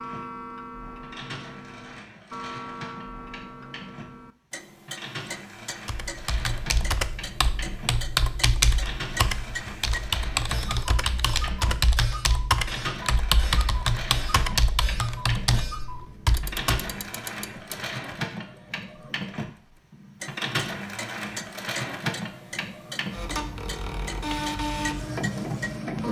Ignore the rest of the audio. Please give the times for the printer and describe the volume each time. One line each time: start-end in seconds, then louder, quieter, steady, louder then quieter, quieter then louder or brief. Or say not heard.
0.0-26.0 louder.